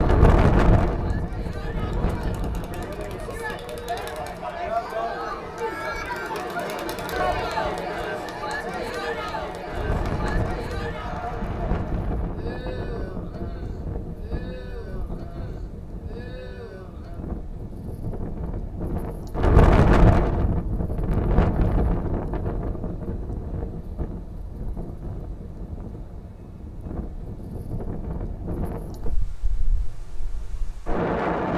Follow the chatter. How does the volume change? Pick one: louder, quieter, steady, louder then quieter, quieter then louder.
louder then quieter.